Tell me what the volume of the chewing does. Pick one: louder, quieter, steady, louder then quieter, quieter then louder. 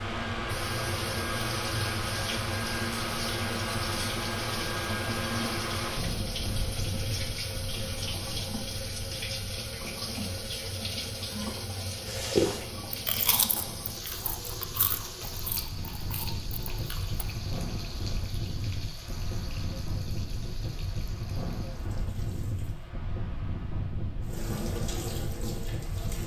quieter.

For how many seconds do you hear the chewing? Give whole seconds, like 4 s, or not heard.
5 s.